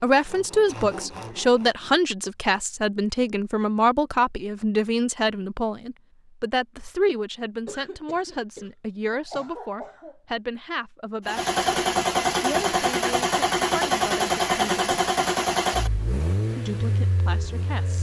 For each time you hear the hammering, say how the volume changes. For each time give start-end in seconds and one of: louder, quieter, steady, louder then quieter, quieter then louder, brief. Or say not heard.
not heard.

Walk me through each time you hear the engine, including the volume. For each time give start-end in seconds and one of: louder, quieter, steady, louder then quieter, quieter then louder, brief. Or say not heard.
11.2-17.9 quieter.